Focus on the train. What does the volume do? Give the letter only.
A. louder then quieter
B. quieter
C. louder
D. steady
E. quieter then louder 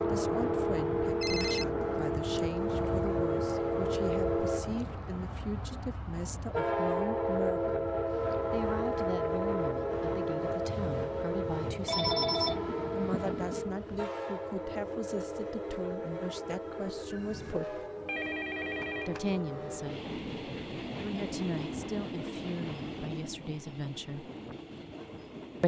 B.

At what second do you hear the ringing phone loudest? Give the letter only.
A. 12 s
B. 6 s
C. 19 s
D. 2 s
A.